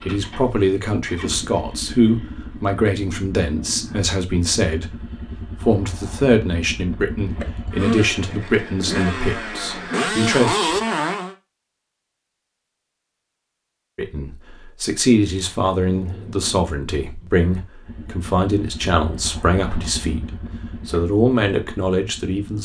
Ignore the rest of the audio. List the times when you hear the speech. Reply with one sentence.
You can hear the speech from 0.0 to 10.6 s and from 13.9 to 22.6 s.